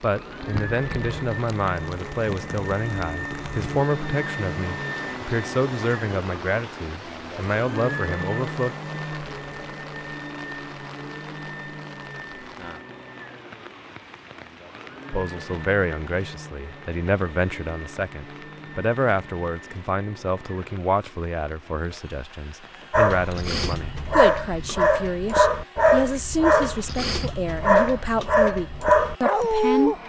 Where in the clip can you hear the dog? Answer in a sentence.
The dog can be heard from 22.9 to 29.9 s.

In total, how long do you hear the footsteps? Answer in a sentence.
You can't hear the footsteps here.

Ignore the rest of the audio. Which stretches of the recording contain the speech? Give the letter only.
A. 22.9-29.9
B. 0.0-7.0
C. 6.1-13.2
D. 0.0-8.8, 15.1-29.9
D.